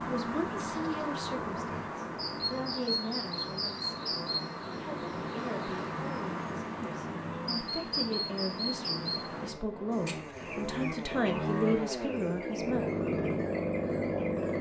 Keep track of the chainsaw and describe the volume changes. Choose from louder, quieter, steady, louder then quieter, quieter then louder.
louder.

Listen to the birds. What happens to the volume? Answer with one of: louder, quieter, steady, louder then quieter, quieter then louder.
quieter.